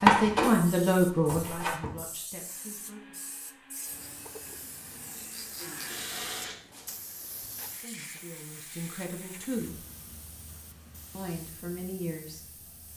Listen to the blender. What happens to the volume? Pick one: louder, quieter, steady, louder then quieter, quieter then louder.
louder.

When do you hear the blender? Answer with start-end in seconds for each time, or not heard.
2.5-6.5.